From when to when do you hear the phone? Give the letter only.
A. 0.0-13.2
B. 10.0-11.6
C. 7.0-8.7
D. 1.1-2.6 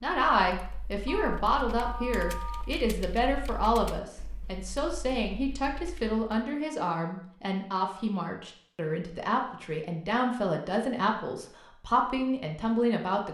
D.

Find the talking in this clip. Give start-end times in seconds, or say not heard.
0.0-13.2.